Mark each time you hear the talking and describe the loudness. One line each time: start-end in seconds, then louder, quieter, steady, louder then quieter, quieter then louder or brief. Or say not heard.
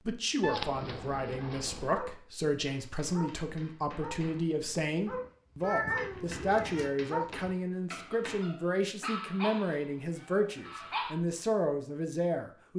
0.1-12.7 steady.